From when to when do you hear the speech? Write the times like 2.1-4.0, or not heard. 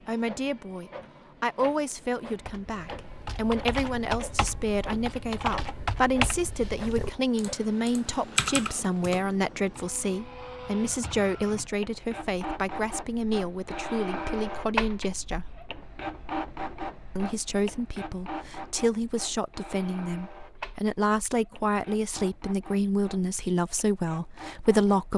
0.1-15.5, 17.1-25.1.